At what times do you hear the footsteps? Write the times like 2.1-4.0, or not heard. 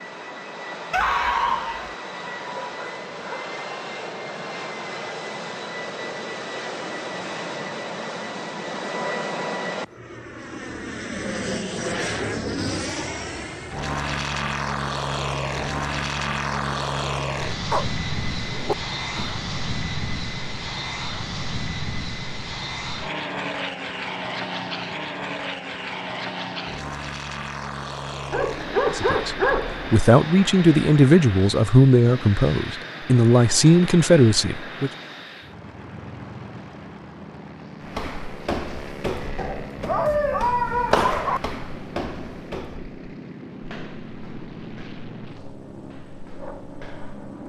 37.8-47.3.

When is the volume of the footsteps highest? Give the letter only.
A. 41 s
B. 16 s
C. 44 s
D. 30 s
A.